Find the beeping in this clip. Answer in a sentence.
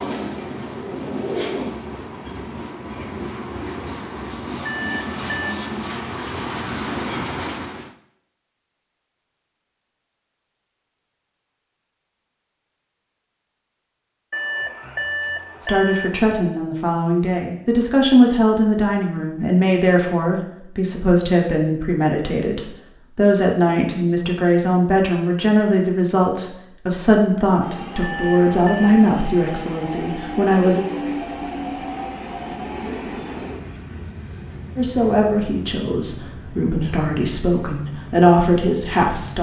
The beeping can be heard from 4.7 to 5.6 s, from 14.3 to 16.4 s and from 28.0 to 28.8 s.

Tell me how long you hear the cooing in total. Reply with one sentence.
You can hear the cooing for 2 seconds altogether.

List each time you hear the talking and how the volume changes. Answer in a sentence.
You can hear the talking from 15.6 to 30.9 s, at a steady volume; and from 34.8 to 39.3 s, getting quieter then louder.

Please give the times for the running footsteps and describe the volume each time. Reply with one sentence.
You can't hear the running footsteps here.